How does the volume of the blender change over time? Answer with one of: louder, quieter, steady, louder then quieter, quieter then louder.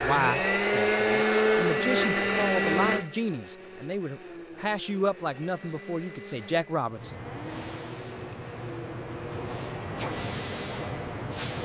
quieter.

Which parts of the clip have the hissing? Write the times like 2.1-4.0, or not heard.
6.8-11.5.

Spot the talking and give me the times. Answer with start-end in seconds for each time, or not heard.
0.0-7.2.